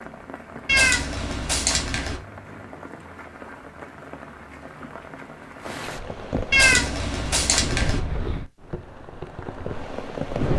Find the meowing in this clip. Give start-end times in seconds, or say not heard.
0.7-2.2, 6.5-8.0.